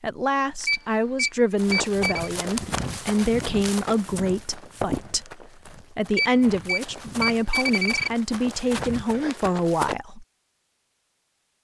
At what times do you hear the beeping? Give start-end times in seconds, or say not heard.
0.6-2.3, 6.1-8.1.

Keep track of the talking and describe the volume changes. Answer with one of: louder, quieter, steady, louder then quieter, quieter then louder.
steady.